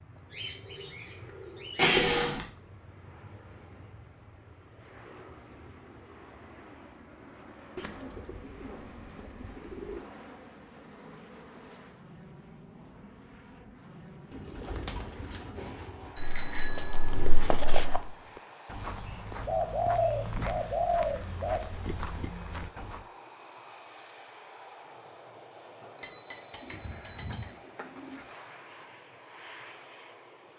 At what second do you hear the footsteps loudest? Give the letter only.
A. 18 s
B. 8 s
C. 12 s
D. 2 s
A.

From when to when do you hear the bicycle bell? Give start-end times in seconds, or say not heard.
1.8-2.5, 16.1-18.1, 26.0-27.5.